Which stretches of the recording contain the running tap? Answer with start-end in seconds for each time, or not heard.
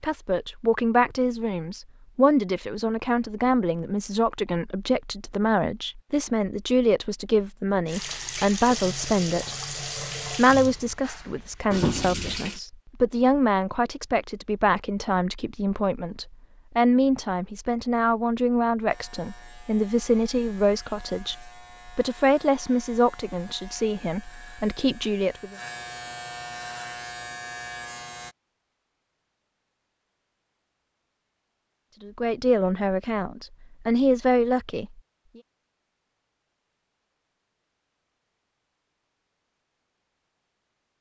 7.8-12.6.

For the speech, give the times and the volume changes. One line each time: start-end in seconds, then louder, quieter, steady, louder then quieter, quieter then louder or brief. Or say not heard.
0.0-25.6 steady
32.0-34.9 brief.